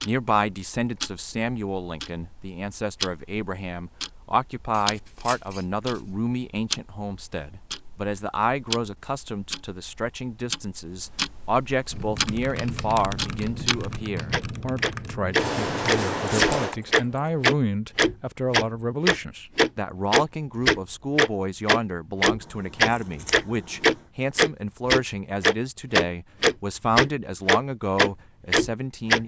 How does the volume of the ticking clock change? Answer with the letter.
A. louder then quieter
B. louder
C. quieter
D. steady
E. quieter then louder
B.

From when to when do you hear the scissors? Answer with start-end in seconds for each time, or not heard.
4.7-6.0, 15.3-16.8, 22.4-24.1.